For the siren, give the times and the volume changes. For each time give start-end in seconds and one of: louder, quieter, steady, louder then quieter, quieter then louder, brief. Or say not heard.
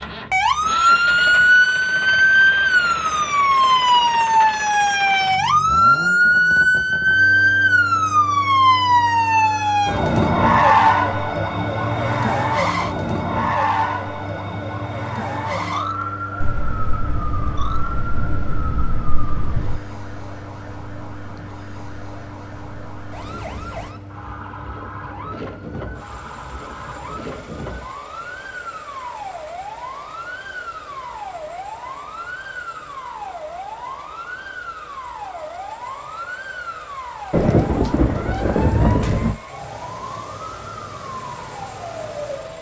0.3-42.5 quieter.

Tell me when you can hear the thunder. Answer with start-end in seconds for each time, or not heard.
16.4-19.8, 37.3-39.4.